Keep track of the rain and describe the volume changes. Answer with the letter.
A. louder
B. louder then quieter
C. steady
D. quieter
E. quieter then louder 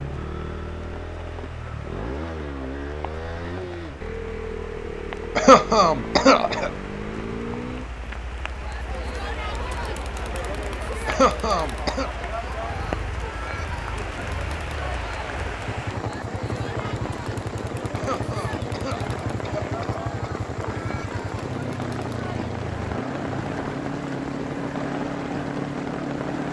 A.